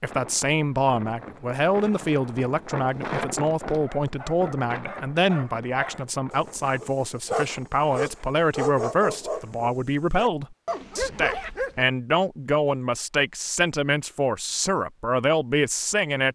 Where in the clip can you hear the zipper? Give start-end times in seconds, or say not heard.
11.1-11.6.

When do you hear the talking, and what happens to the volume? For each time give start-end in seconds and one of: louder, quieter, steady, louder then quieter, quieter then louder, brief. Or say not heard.
0.0-16.2 steady.